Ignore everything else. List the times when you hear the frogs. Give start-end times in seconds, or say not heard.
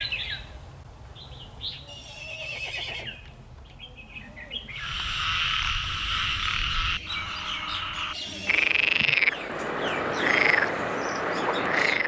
4.8-12.0.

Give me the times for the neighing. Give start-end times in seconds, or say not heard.
1.9-3.2, 8.1-8.8.